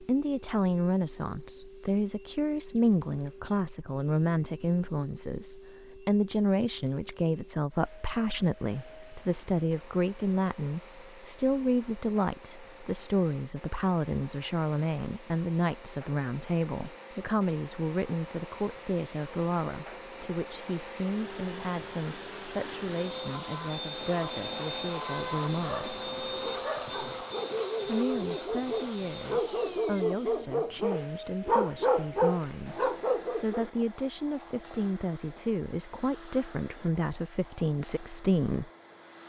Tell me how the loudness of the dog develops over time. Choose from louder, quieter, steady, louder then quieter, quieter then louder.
louder.